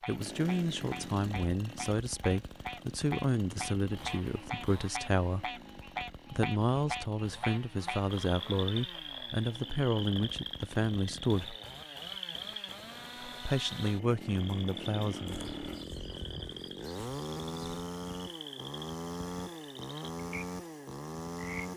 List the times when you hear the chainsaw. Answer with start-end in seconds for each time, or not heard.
0.0-21.7.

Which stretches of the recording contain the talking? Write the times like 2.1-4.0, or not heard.
0.1-5.6, 6.3-11.6, 13.2-15.5.